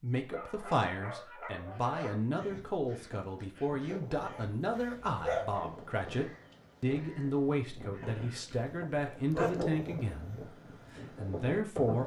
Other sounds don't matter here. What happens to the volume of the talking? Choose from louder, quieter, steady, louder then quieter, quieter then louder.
steady.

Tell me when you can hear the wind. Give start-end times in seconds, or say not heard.
2.4-12.0.